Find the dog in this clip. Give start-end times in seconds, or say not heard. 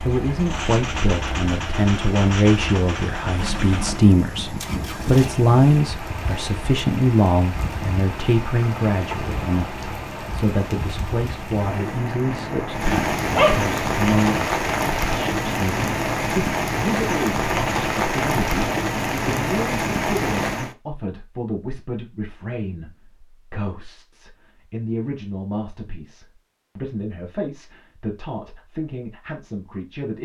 12.8-13.7.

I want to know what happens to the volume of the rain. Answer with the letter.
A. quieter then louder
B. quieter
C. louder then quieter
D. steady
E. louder
E.